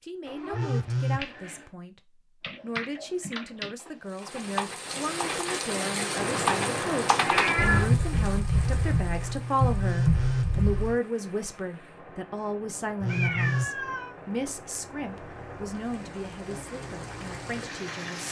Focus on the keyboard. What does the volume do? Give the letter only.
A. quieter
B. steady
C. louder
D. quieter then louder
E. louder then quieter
C.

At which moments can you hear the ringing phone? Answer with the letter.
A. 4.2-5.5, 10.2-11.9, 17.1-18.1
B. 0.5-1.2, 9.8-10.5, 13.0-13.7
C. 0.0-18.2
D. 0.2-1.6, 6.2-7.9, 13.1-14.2
B.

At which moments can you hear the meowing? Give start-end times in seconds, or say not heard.
0.2-1.6, 6.2-7.9, 13.1-14.2.